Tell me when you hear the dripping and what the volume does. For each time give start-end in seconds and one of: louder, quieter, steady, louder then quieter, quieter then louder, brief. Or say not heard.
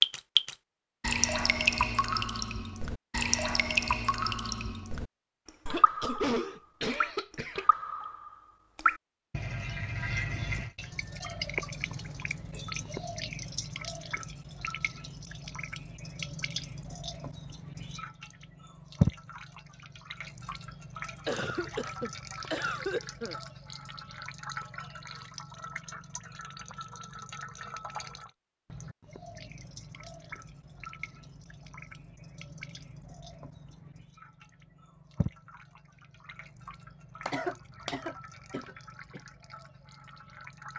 0.0-40.7 quieter.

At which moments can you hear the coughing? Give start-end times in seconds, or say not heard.
5.7-7.7, 21.2-23.4, 37.2-39.2.